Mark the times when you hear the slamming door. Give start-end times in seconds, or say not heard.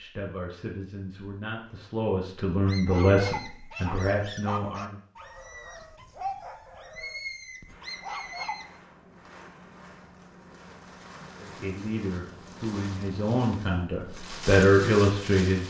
not heard.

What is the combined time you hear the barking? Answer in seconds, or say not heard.
6 s.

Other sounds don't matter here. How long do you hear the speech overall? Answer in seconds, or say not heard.
9 s.